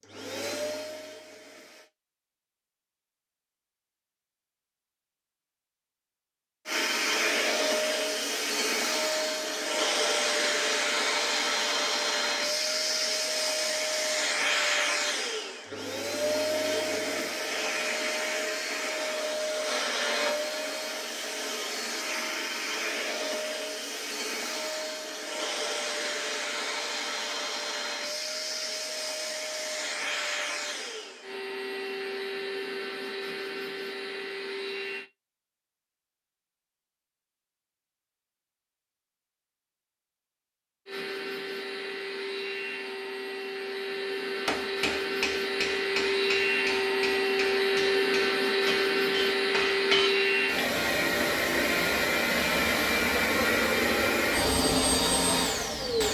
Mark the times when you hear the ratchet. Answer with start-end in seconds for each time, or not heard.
not heard.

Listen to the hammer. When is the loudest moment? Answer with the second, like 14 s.
50 s.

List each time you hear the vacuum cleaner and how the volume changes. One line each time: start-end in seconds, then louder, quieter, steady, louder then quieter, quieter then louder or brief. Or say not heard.
0.0-1.9 brief
6.7-35.1 quieter
40.9-56.0 louder.